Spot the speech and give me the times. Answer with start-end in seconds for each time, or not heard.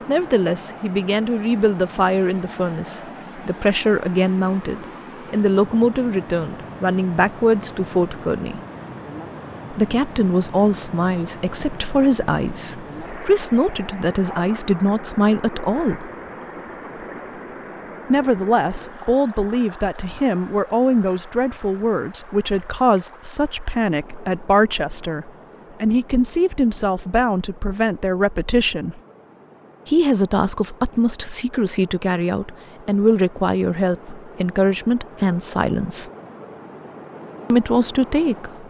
0.1-8.6, 9.7-16.1, 18.1-29.0, 29.9-36.1, 37.5-38.6.